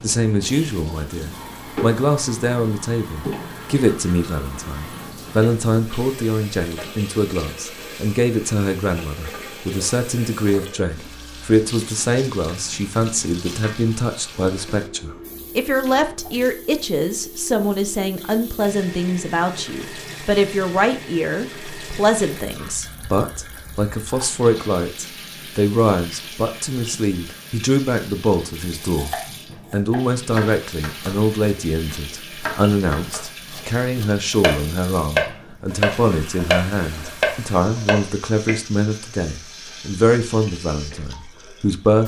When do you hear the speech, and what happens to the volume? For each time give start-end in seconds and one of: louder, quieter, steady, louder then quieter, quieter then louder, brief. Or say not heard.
0.0-42.0 steady.